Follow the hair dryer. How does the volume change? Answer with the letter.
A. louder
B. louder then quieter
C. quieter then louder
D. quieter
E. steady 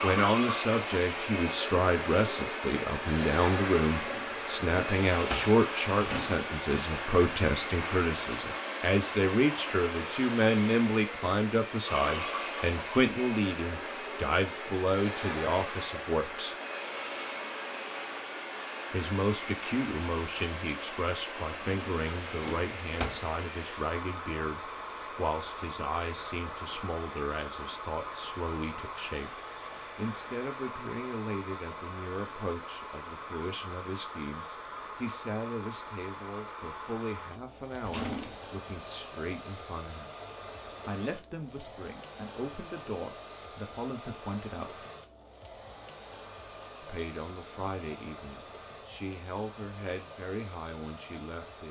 D.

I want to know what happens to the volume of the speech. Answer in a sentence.
The loudness of the speech goes down.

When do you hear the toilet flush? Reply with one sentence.
You can't hear the toilet flush here.